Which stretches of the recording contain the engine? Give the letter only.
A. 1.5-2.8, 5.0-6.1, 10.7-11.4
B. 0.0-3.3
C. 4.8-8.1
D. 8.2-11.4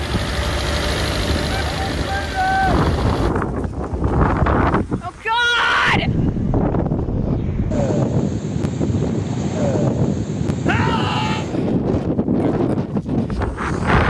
B.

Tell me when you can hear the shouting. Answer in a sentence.
The shouting can be heard from 1.5 to 2.8 s, from 5.0 to 6.1 s and from 10.7 to 11.4 s.